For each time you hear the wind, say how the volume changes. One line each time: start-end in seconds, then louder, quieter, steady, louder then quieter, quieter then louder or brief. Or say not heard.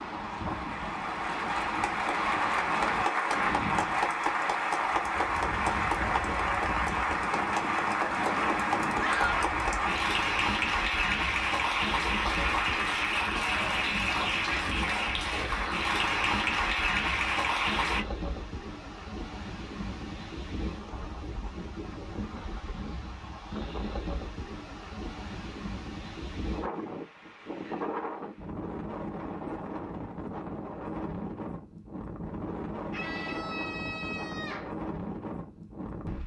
0.0-36.2 steady.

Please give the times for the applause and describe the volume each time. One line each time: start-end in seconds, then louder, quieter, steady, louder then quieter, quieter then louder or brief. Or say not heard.
0.2-18.1 steady.